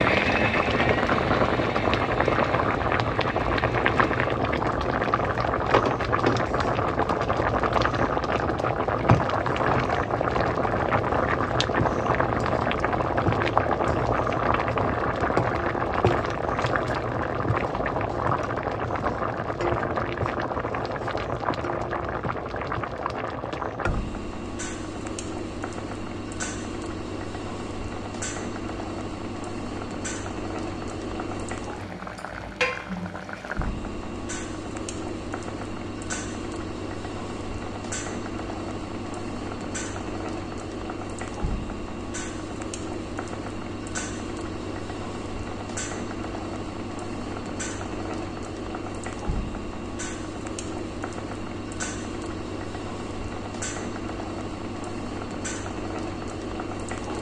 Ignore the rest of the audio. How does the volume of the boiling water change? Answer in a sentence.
The volume of the boiling water goes down.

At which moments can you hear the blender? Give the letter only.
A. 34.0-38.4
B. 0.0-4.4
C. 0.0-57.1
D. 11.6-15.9
B.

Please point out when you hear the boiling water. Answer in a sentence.
The boiling water can be heard from 0.0 to 57.1 s.